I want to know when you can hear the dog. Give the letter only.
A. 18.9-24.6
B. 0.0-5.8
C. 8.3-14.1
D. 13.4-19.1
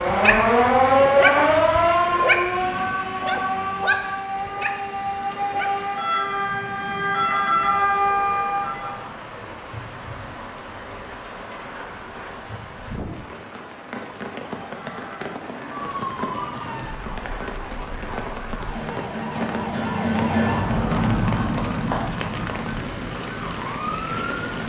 B.